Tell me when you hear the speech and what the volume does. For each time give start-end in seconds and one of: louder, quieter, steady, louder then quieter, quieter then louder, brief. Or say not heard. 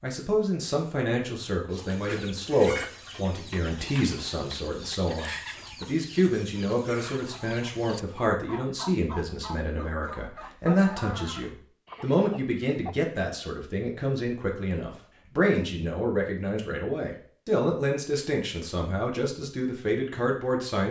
0.0-20.8 steady.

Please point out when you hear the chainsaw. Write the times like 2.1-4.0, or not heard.
not heard.